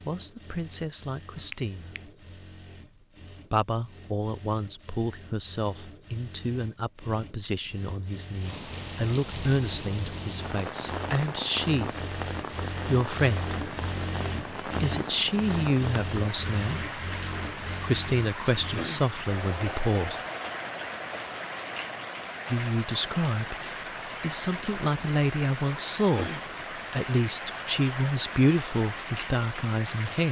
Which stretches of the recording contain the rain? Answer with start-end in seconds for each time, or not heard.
8.4-30.2.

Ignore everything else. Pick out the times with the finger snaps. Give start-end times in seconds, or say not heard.
1.4-2.1.